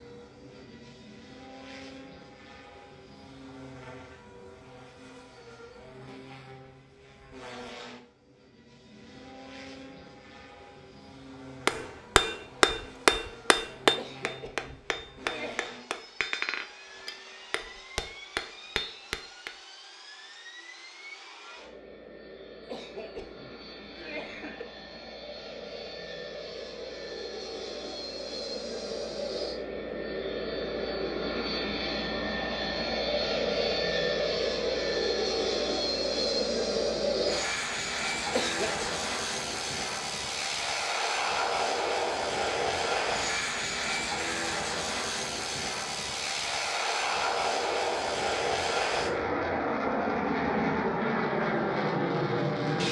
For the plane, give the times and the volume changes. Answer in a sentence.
You can hear the plane from 0.0 to 52.8 s, getting louder.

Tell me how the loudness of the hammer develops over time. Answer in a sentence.
The volume of the hammer goes down.